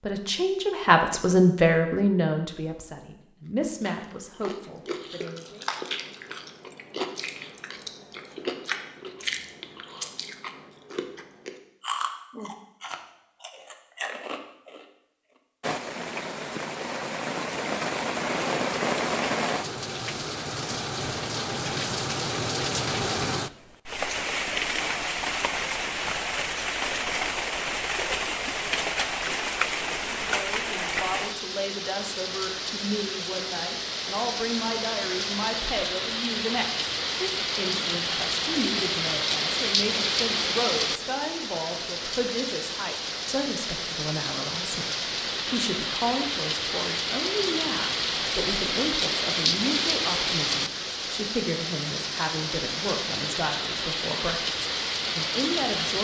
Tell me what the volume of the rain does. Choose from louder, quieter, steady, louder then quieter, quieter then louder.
steady.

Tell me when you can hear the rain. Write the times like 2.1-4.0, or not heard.
15.6-55.9.